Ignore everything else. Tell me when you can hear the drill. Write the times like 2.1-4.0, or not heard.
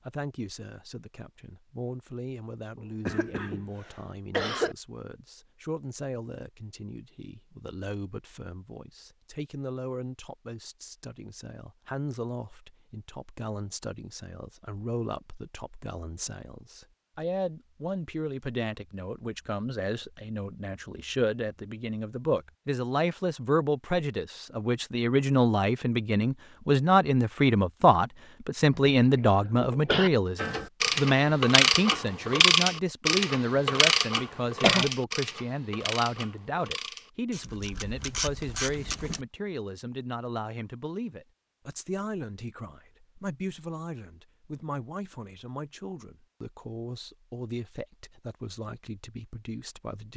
not heard.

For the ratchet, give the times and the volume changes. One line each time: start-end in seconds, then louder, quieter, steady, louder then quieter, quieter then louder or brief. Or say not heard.
30.4-39.2 quieter.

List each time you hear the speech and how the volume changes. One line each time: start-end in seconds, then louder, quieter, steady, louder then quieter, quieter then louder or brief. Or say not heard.
0.0-50.1 louder then quieter.